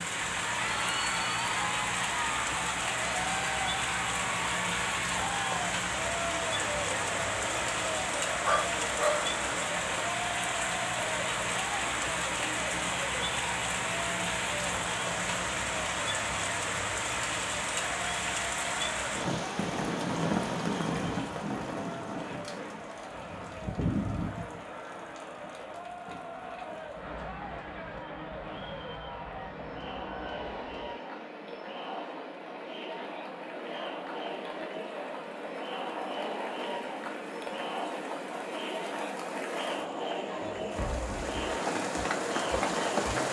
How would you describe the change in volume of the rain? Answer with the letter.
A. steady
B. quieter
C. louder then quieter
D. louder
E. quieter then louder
E.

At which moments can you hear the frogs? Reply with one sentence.
You can't hear the frogs here.